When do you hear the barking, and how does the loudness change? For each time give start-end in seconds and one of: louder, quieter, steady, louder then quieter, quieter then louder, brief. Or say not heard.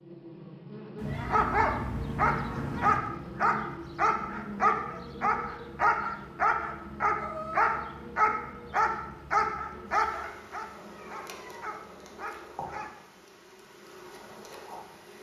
1.1-12.9 quieter.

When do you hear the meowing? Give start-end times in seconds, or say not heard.
0.9-3.0, 7.2-7.8, 10.3-11.8.